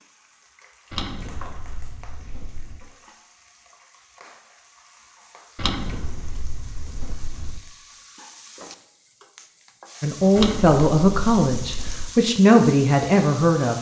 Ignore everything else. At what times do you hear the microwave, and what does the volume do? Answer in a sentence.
You can't hear the microwave here.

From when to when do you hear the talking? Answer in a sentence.
The talking can be heard from 10.0 to 13.7 s.